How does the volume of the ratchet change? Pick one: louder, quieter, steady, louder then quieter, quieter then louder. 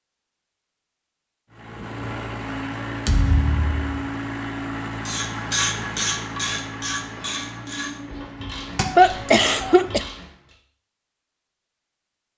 quieter.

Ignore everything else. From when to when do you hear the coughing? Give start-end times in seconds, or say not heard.
8.9-10.1.